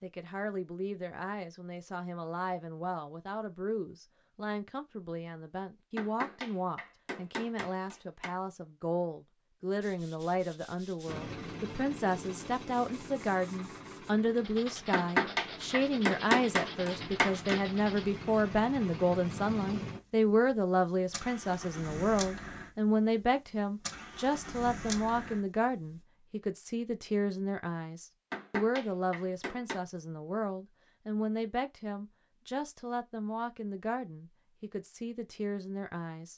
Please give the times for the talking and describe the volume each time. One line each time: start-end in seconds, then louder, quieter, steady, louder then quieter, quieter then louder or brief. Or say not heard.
0.0-36.3 louder then quieter.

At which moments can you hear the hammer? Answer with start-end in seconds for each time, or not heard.
6.0-8.3, 14.9-17.6, 28.3-29.8.